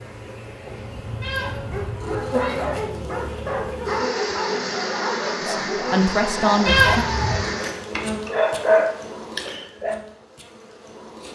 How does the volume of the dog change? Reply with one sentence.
The volume of the dog goes up.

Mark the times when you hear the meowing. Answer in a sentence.
The meowing can be heard from 1.2 to 3.1 s and from 6.7 to 7.5 s.